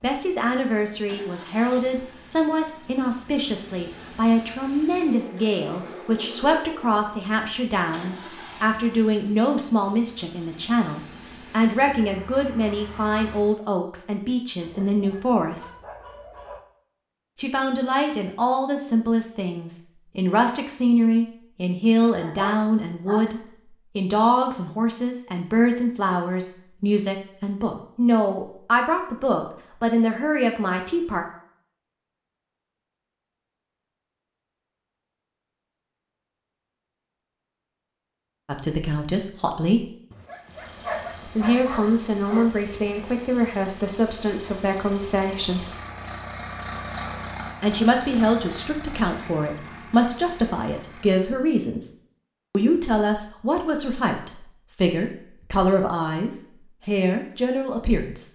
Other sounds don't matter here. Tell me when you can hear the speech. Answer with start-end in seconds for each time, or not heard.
0.0-15.7, 17.4-31.2, 38.5-39.9, 41.2-45.6, 47.6-51.9, 52.5-58.2.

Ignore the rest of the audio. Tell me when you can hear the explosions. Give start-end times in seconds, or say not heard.
not heard.